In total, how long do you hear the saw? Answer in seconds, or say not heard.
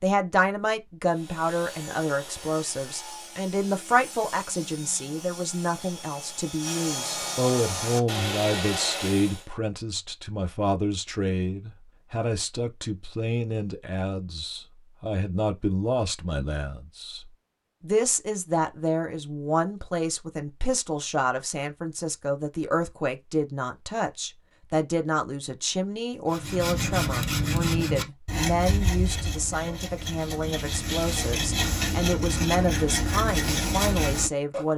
17 s.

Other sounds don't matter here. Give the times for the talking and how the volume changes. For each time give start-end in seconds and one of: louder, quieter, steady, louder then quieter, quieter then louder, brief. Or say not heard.
0.0-34.7 steady.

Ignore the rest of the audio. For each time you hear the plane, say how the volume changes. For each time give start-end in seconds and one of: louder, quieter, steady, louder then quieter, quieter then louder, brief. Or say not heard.
not heard.